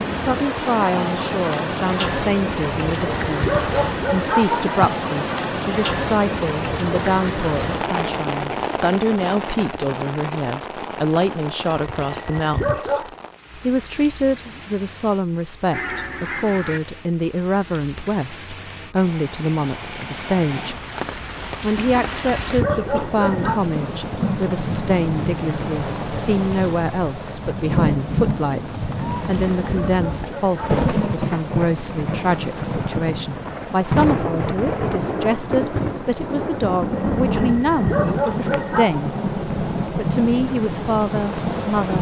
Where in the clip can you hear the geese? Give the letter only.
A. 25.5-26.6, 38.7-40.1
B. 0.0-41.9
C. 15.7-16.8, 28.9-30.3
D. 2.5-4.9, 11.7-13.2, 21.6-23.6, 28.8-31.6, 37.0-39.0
C.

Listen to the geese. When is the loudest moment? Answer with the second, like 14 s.
16 s.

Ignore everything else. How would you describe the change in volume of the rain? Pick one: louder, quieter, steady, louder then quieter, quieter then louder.
quieter then louder.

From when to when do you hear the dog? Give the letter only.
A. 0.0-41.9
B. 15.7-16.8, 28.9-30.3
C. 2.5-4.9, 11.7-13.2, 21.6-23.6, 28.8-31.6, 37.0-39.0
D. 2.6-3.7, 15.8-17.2
C.